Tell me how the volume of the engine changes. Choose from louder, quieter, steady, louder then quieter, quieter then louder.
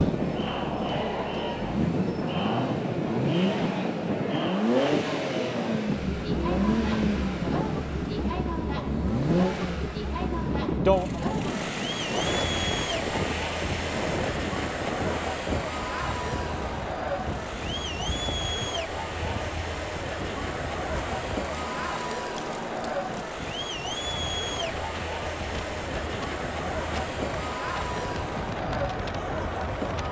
quieter.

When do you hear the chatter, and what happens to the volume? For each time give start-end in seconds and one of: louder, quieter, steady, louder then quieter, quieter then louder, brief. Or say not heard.
0.0-30.0 steady.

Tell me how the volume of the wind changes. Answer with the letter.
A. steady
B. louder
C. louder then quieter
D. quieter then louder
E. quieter
E.